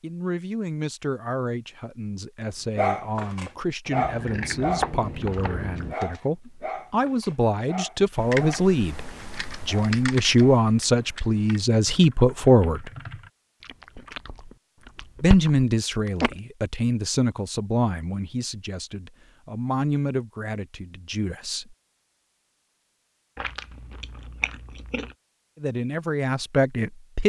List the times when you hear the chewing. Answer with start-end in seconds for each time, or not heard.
4.0-6.0, 13.6-16.4, 23.4-25.1.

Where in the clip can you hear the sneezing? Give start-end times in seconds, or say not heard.
not heard.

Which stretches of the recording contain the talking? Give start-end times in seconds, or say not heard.
0.0-12.9, 15.2-21.8, 25.6-27.2.